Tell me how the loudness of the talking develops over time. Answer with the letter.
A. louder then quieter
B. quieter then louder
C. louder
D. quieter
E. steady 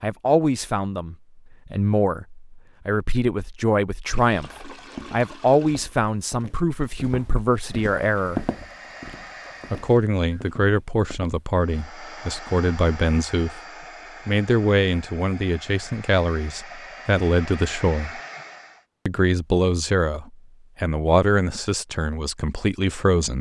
E.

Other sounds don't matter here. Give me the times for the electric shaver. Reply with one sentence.
You can't hear the electric shaver here.